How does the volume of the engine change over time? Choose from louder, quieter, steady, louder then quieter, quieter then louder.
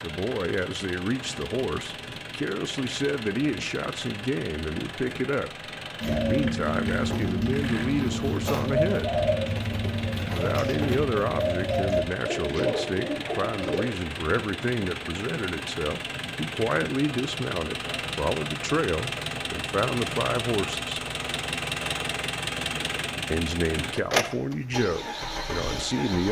louder.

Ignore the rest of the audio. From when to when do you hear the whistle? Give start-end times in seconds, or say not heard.
not heard.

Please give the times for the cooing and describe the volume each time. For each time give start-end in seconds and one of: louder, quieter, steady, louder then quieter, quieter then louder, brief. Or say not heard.
6.0-13.8 steady.